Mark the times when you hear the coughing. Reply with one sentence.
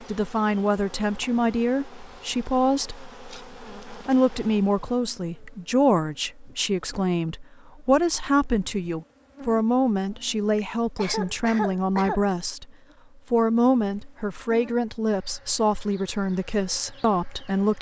You can hear the coughing from 10.9 to 12.2 s.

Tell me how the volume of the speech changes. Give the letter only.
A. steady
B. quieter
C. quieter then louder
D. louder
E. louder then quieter
A.